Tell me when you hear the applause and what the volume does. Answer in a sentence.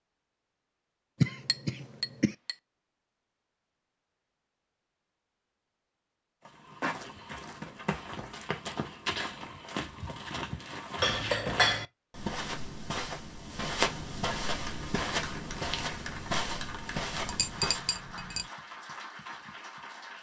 You can hear the applause from 14.6 to 20.1 s, at a steady volume.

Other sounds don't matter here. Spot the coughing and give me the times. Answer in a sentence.
You can hear the coughing from 1.2 to 2.4 s.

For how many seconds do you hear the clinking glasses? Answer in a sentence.
The clinking glasses can be heard for 3 seconds in total.